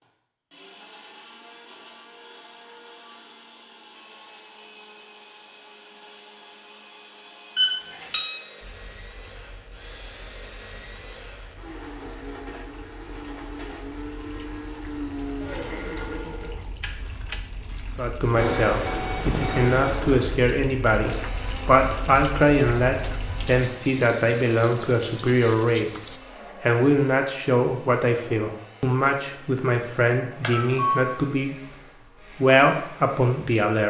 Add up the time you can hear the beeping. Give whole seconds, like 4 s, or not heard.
3 s.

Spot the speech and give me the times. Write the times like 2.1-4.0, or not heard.
17.9-33.8.